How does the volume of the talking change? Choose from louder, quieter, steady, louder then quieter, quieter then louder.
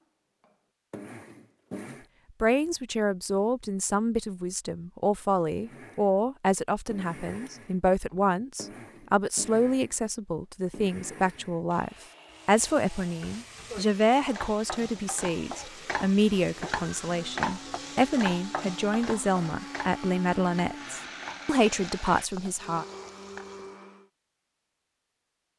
steady.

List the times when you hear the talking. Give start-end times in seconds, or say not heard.
2.4-22.9.